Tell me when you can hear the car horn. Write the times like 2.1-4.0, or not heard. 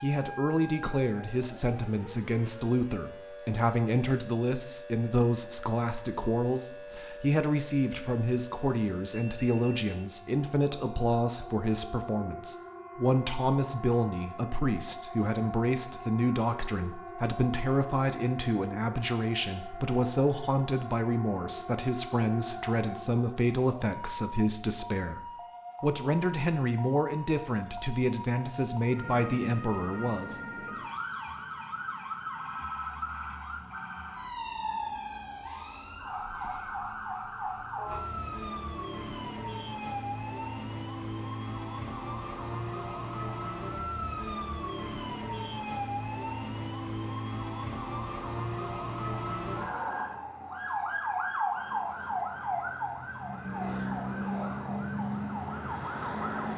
not heard.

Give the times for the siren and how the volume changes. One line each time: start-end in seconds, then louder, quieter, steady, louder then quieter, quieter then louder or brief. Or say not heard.
0.0-56.5 louder.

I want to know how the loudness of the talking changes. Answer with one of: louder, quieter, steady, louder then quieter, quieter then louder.
steady.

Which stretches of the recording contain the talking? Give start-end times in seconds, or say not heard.
0.0-30.4.